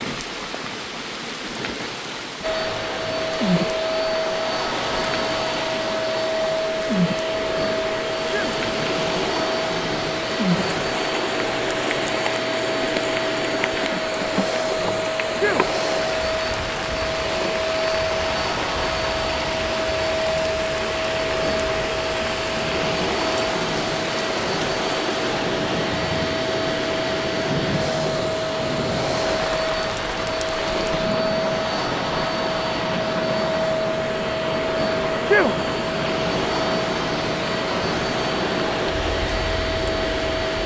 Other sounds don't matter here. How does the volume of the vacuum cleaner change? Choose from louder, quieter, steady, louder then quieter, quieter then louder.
steady.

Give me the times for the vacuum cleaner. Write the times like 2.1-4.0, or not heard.
2.4-40.6.